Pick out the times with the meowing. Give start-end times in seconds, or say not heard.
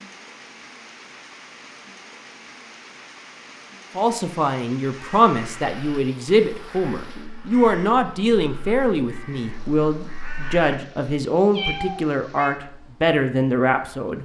11.5-12.5.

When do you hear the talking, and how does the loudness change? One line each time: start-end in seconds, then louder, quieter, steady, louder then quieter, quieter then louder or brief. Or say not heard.
4.0-14.2 steady.